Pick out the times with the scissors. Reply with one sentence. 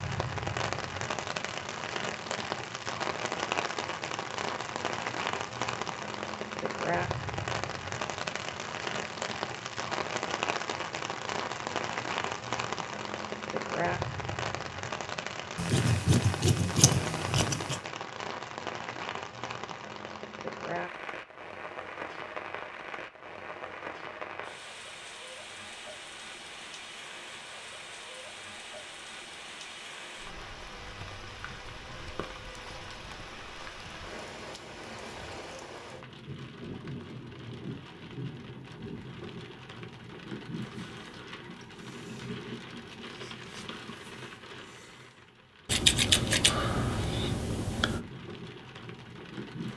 The scissors can be heard from 15.6 to 17.8 s and from 45.6 to 48.0 s.